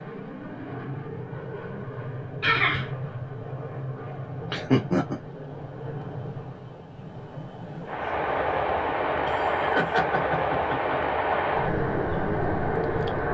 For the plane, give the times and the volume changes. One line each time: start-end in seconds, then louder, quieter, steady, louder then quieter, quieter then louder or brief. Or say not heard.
0.0-13.2 louder.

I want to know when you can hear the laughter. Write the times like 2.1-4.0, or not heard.
2.4-2.9, 4.5-5.2, 9.2-11.2.